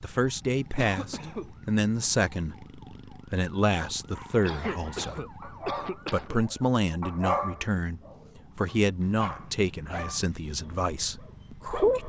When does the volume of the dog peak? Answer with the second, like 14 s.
7 s.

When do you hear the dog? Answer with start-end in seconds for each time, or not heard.
4.1-12.0.